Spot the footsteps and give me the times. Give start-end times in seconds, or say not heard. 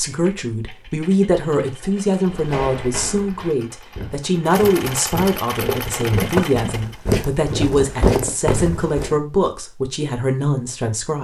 2.2-9.2.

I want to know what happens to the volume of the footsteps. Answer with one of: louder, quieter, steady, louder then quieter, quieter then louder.
louder.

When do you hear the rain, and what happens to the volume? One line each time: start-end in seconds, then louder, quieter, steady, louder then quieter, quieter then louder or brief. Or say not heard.
not heard.